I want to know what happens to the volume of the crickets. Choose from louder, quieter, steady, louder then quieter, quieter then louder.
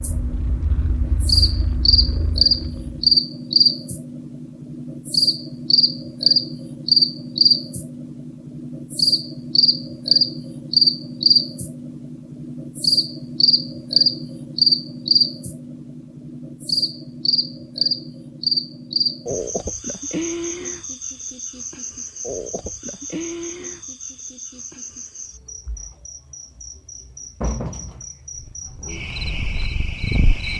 quieter.